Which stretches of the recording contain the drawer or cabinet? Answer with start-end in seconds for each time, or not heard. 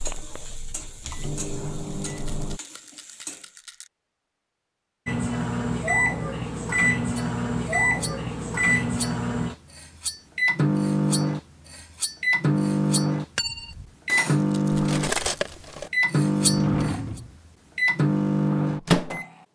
16.4-17.4.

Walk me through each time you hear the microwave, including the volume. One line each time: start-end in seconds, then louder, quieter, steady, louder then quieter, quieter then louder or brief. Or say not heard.
0.0-2.6 brief
5.0-19.3 steady.